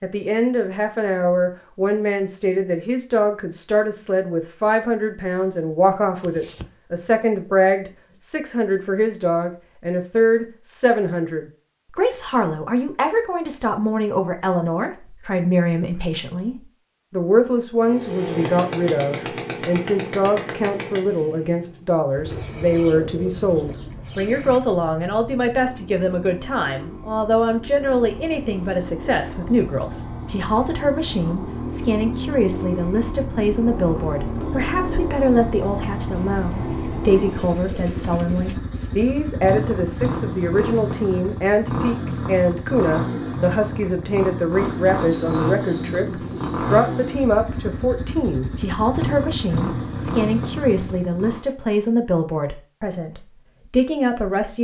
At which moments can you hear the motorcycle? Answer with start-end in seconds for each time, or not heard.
17.8-51.5.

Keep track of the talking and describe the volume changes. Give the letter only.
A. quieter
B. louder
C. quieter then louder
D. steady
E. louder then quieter
D.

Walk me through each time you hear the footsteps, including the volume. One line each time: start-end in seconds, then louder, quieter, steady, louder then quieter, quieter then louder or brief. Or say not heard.
not heard.